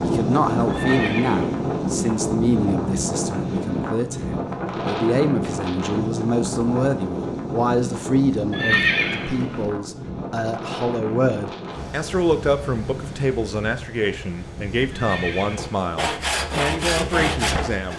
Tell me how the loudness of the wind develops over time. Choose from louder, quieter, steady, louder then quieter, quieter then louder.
quieter.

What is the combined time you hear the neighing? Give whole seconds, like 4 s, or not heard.
3 s.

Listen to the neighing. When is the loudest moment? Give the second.
9 s.